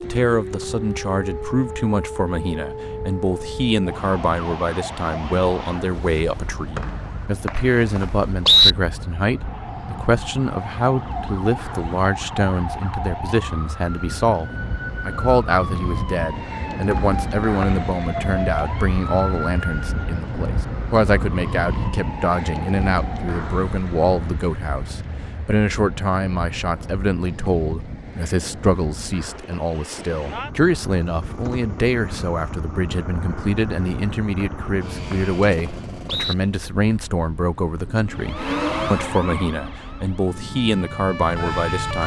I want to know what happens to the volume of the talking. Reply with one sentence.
The volume of the talking stays about the same.